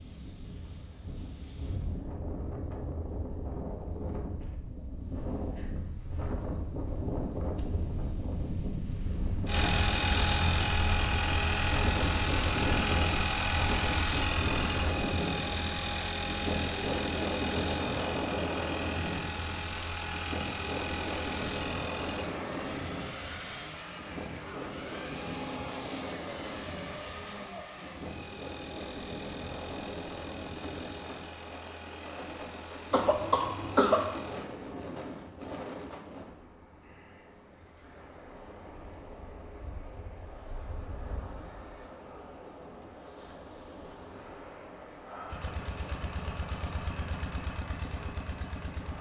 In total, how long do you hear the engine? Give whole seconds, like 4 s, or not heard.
29 s.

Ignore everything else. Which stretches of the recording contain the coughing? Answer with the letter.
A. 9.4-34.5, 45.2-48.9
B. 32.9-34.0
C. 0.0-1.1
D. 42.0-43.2
B.